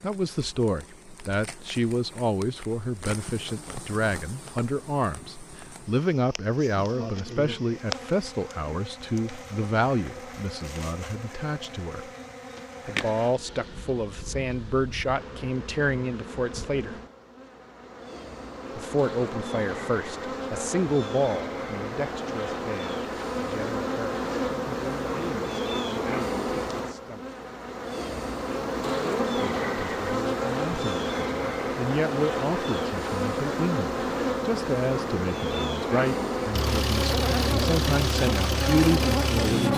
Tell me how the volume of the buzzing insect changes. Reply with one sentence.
The loudness of the buzzing insect goes up.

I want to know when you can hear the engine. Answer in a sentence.
You can hear the engine from 36.5 to 39.7 s.